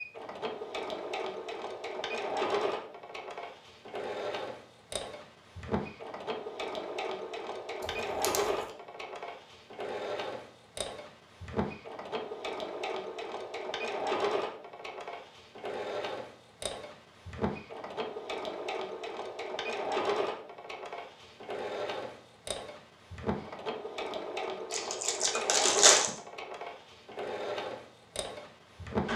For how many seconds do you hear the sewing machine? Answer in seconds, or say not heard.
29 s.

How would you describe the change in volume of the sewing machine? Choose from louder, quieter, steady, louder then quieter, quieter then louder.
steady.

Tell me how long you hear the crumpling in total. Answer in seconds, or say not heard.
2 s.